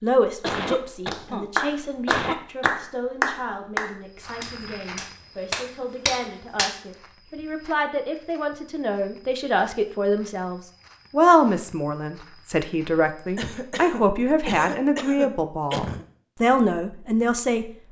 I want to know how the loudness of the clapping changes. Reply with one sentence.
The volume of the clapping goes down, then up.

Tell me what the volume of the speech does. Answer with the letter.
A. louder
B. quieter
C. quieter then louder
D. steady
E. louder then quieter
A.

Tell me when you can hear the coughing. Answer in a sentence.
The coughing can be heard from 0.4 to 1.4 s, from 2.0 to 2.7 s and from 13.3 to 16.1 s.